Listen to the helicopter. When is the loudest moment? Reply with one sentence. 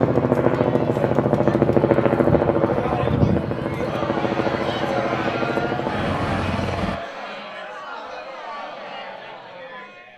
The loudest moment of the helicopter is at 2 seconds.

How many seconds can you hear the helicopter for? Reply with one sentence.
The helicopter can be heard for 7 seconds in total.